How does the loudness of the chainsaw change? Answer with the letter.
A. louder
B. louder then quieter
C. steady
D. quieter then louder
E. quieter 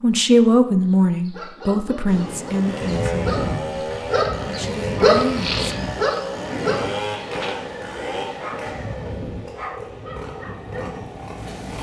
E.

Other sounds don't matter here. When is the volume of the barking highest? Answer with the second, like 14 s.
5 s.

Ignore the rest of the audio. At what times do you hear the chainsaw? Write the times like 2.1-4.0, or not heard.
2.2-11.7.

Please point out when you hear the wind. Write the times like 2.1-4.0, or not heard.
2.0-11.7.